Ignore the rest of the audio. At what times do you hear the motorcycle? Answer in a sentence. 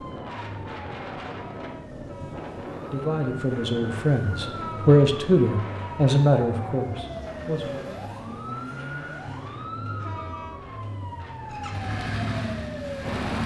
You can hear the motorcycle from 11.5 to 13.4 s.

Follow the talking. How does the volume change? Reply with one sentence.
The volume of the talking goes up, then down.